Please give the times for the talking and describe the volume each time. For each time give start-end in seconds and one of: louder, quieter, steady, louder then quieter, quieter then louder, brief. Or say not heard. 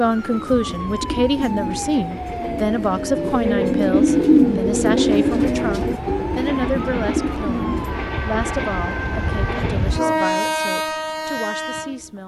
0.0-12.2 quieter.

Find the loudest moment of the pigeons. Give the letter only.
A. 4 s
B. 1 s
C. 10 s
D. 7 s
A.